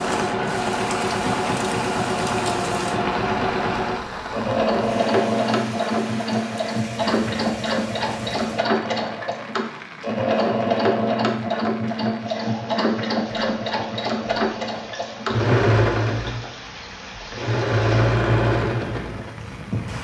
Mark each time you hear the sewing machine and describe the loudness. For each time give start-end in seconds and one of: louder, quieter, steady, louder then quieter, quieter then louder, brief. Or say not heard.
0.0-20.0 steady.